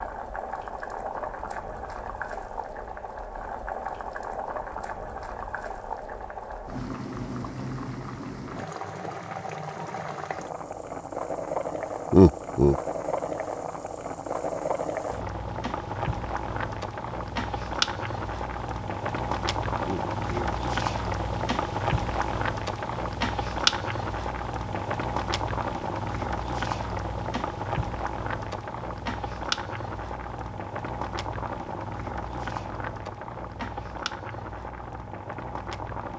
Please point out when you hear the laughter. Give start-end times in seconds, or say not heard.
12.1-12.8, 19.8-20.5.